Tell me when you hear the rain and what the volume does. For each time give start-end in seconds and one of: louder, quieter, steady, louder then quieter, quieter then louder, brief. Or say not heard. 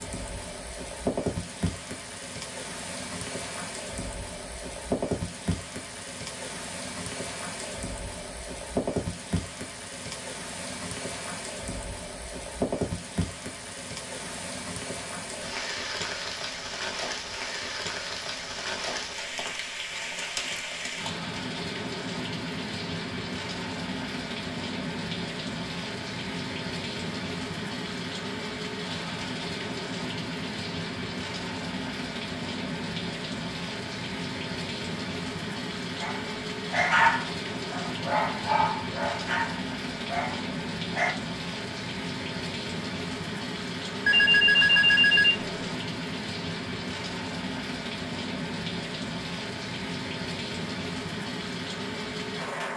0.0-52.7 steady.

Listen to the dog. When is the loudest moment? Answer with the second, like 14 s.
37 s.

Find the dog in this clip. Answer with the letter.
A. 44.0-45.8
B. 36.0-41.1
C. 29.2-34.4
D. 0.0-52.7
B.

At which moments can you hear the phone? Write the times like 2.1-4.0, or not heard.
44.0-45.8.